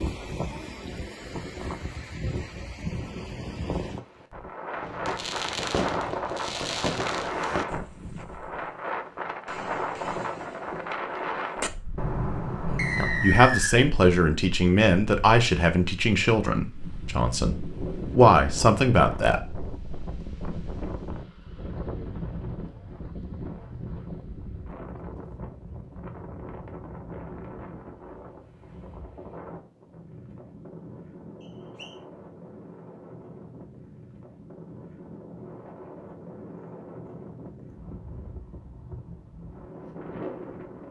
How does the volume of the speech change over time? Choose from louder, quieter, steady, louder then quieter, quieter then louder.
quieter then louder.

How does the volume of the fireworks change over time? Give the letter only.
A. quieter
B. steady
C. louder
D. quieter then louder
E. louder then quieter
D.